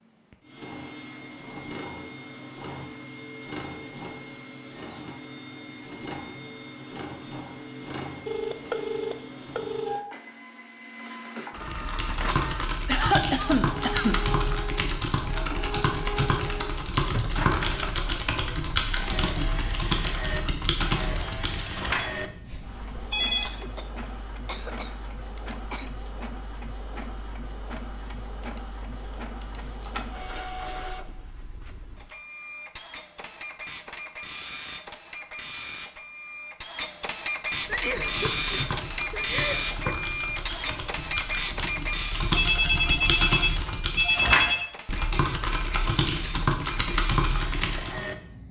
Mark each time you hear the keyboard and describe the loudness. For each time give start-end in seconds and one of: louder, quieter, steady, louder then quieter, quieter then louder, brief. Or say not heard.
11.7-22.1 steady
37.6-48.0 louder.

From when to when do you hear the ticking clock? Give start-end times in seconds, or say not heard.
not heard.